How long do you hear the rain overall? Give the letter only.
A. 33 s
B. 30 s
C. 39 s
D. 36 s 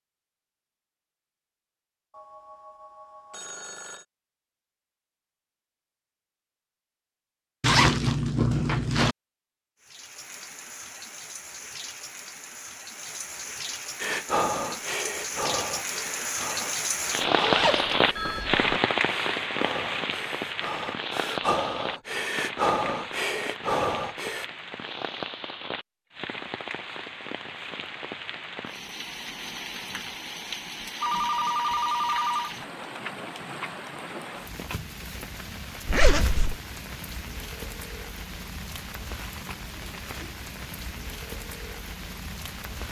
A.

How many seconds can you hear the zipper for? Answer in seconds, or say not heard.
4 s.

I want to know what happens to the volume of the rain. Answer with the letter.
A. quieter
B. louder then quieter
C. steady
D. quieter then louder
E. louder
B.